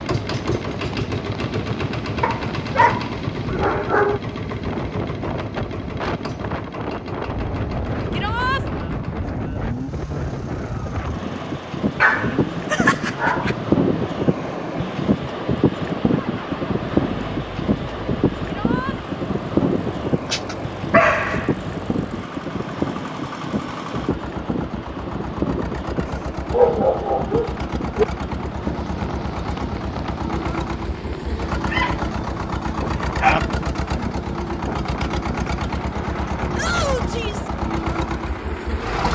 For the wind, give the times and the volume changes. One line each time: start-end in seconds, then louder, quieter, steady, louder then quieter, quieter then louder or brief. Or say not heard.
0.0-39.0 louder then quieter.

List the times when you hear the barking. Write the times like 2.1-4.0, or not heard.
2.2-4.2, 12.0-13.6, 20.3-21.6, 26.1-28.1, 31.6-33.4.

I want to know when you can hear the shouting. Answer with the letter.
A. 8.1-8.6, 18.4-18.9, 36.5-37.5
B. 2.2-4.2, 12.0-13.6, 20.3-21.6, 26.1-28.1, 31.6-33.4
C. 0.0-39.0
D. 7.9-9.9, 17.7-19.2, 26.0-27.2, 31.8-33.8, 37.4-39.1
A.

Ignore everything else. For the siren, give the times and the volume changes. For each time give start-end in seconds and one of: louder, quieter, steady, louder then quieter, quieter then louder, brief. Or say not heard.
not heard.